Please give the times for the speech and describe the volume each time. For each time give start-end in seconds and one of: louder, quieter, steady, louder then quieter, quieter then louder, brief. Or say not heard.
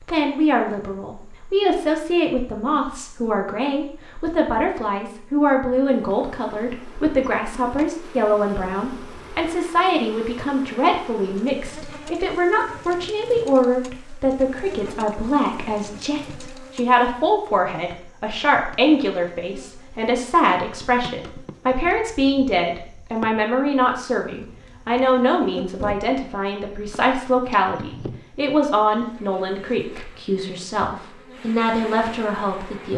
0.0-32.9 steady.